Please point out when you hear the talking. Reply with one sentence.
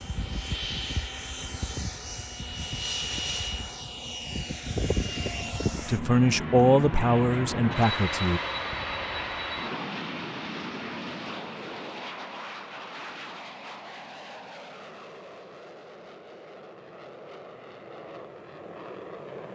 You can hear the talking from 5.8 to 8.4 s.